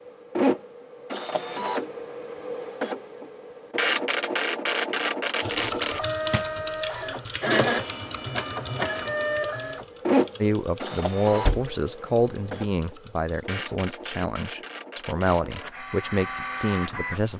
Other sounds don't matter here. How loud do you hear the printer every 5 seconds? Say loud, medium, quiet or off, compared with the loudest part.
loud, loud, loud, medium.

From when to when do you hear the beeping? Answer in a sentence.
You can hear the beeping from 7.7 to 9.4 s.